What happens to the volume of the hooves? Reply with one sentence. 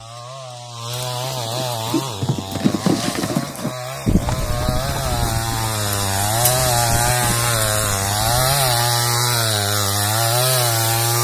The volume of the hooves goes down.